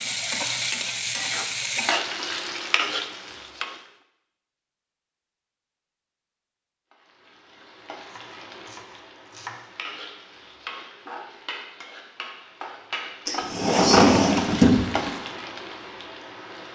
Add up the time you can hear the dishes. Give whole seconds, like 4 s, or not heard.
not heard.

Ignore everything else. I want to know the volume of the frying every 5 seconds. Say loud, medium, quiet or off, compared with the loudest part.
loud, quiet, medium, medium.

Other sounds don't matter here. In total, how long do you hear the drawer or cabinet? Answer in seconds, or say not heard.
2 s.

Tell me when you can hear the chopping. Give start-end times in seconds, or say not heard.
8.0-9.7.